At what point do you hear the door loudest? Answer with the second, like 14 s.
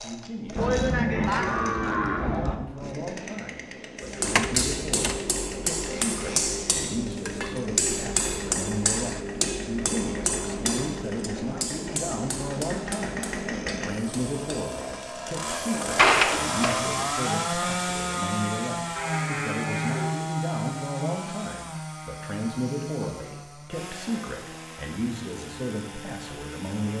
16 s.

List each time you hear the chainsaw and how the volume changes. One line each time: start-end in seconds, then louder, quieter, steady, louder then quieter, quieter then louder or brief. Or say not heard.
0.0-26.9 louder then quieter.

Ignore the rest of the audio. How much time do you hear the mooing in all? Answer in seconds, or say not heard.
3 s.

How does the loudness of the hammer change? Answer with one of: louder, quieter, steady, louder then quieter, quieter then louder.
quieter.